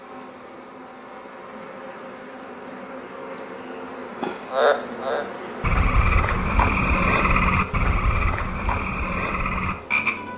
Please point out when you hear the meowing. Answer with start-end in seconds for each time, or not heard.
not heard.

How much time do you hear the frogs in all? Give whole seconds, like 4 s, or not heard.
6 s.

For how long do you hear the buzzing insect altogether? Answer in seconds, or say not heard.
10 s.